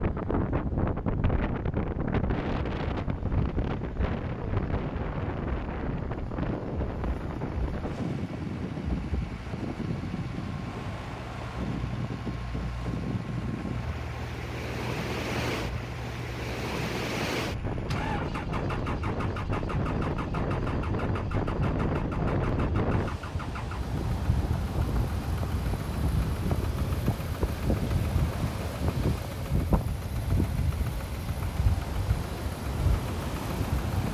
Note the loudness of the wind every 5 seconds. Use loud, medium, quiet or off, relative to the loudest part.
loud, loud, medium, loud, loud, loud, loud.